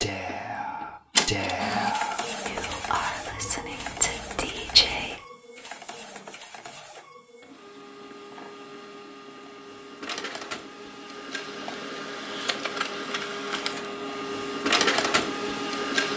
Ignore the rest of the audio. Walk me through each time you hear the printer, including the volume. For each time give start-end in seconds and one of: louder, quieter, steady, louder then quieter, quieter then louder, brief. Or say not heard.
0.0-16.1 quieter then louder.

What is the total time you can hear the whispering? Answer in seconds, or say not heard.
5 s.